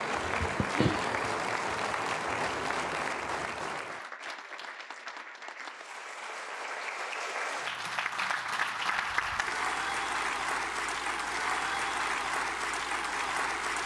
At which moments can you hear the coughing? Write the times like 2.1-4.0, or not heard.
0.2-1.3.